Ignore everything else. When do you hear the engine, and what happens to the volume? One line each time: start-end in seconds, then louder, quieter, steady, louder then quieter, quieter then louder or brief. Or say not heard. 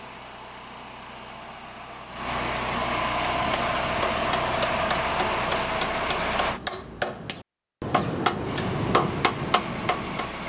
0.0-6.6 louder
8.4-10.4 brief.